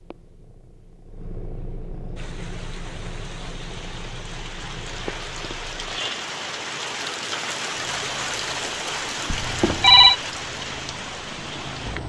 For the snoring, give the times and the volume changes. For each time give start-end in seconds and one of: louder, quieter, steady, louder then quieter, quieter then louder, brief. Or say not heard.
not heard.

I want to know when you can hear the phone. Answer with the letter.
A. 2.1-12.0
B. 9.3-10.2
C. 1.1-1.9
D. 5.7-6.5
B.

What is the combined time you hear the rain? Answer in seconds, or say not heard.
10 s.